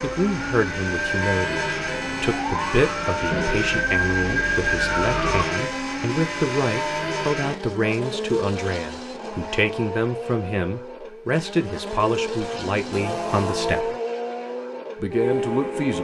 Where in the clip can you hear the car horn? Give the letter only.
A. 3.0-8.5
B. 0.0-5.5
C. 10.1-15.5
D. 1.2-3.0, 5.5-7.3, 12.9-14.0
D.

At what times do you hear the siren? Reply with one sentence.
You can hear the siren from 0.0 to 5.5 s.